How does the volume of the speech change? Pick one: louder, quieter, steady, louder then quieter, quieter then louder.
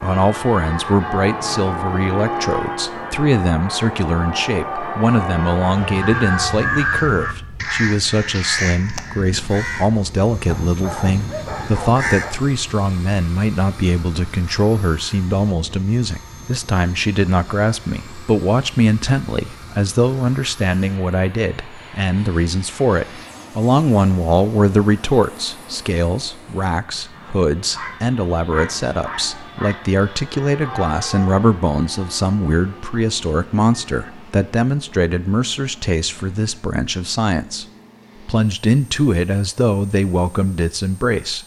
steady.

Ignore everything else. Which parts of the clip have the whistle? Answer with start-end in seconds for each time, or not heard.
not heard.